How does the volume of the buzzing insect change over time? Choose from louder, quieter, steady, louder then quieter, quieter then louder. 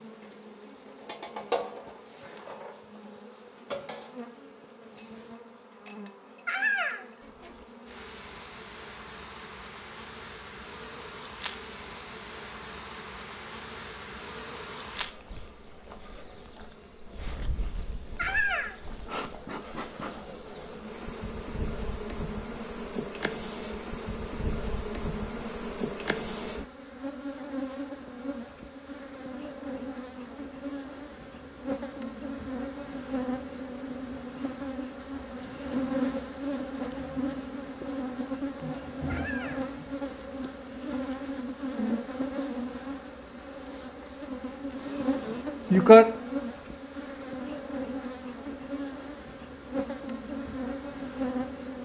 louder.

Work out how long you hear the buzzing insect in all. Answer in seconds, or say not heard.
52 s.